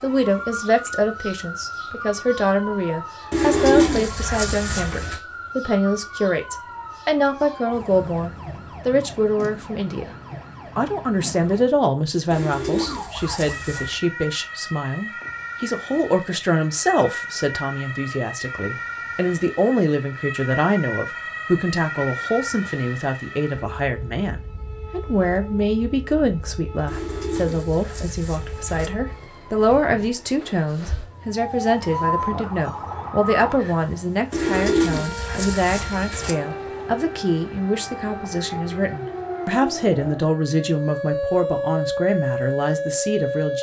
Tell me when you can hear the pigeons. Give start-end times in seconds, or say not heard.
3.3-5.2, 12.3-14.0, 26.9-28.9, 34.3-36.4.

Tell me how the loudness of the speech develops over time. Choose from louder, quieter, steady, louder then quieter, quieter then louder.
steady.